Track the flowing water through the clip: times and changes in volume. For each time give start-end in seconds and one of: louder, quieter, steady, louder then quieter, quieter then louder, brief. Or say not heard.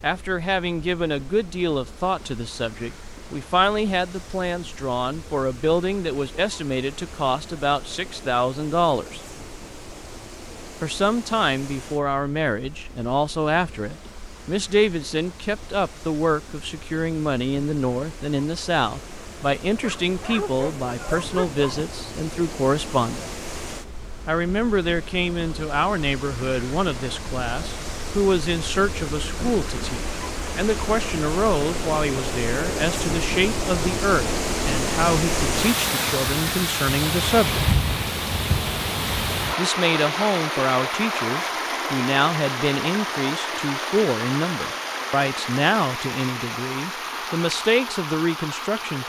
0.0-49.0 louder.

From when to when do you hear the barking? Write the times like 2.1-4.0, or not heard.
19.8-21.9.